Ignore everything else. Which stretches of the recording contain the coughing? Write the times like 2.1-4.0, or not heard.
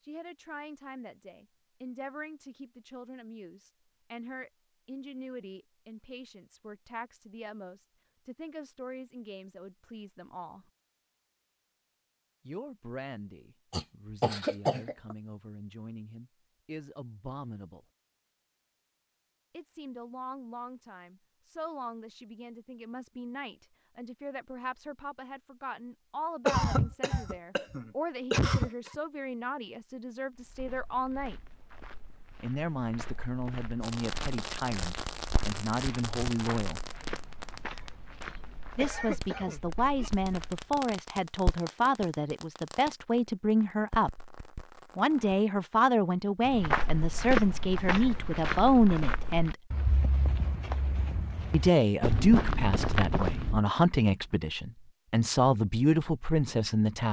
13.7-15.2, 26.4-28.9, 38.8-40.1.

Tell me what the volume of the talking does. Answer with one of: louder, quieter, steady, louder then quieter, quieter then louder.
louder.